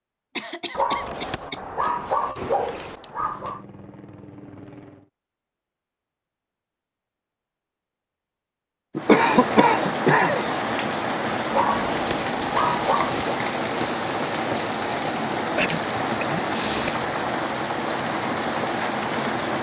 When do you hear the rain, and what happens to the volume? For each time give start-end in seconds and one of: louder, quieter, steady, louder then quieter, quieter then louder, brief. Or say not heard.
8.9-19.5 steady.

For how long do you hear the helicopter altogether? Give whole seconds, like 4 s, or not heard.
2 s.